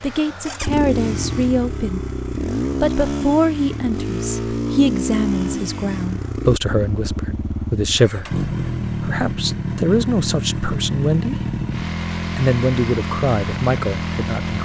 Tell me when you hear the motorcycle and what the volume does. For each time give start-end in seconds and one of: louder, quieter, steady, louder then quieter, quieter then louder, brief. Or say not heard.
0.0-14.6 steady.